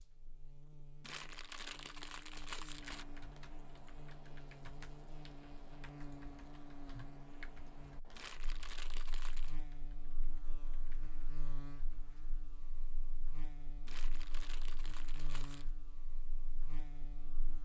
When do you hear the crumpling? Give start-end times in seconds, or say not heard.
1.0-3.0, 8.2-9.6, 13.8-15.7.